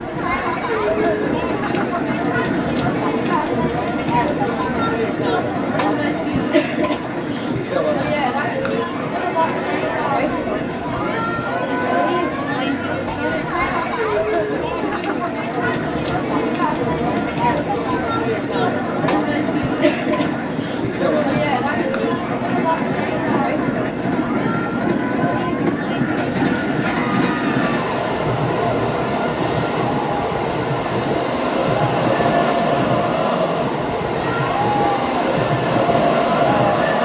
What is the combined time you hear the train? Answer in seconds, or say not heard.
37 s.